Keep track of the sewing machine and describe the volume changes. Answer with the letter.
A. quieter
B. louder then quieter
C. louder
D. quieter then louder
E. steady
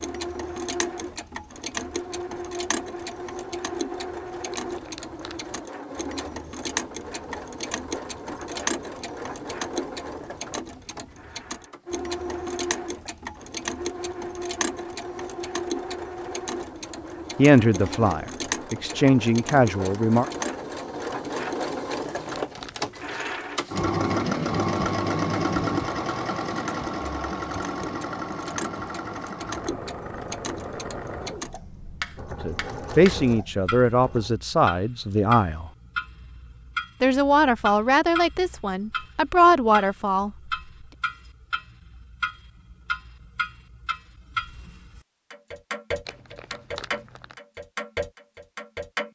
B.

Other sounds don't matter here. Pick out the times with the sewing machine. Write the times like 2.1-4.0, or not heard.
0.0-34.4.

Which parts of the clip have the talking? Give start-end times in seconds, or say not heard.
17.4-20.2, 32.4-35.7, 37.0-40.3.